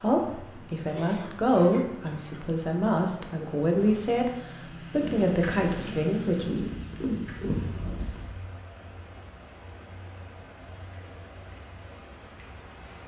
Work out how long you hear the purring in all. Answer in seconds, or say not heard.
4 s.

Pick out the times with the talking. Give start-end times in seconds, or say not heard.
0.0-4.3, 4.9-6.7.